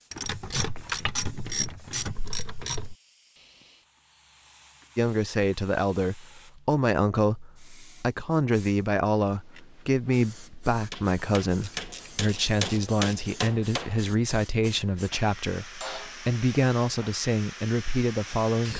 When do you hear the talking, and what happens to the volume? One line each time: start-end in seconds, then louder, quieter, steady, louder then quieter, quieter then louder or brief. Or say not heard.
5.0-18.7 steady.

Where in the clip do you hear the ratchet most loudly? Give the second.
1 s.